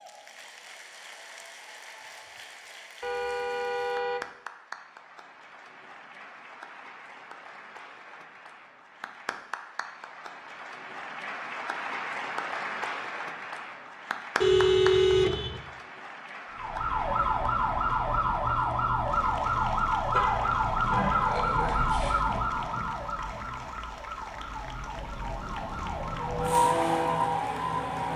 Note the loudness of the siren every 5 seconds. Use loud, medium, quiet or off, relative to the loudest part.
off, off, off, loud, loud, loud.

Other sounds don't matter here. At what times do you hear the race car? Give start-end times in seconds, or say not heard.
26.1-28.1.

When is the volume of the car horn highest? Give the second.
15 s.